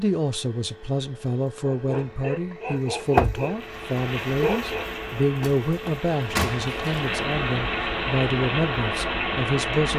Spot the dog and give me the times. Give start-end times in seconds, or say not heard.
1.6-4.8.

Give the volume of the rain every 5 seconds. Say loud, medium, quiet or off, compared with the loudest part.
medium, loud.